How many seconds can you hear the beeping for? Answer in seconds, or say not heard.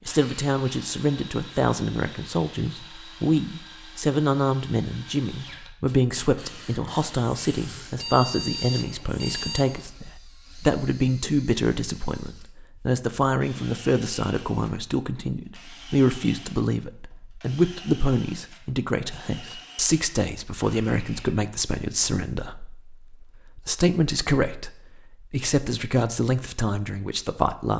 2 s.